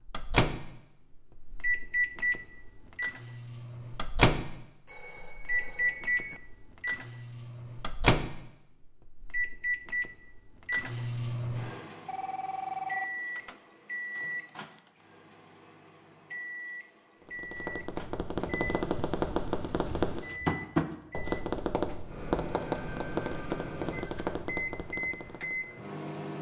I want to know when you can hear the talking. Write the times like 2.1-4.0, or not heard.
not heard.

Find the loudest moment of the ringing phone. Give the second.
13 s.